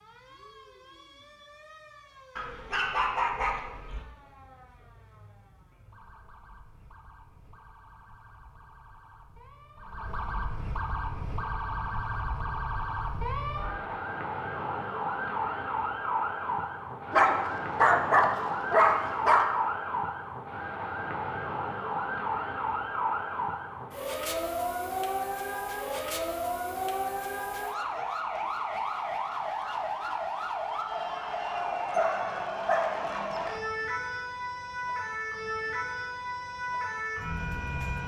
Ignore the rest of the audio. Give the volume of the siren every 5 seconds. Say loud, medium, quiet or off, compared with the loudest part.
quiet, quiet, loud, loud, loud, loud, loud, loud.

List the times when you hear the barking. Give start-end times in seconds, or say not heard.
2.4-4.0, 17.1-19.4, 31.9-33.5.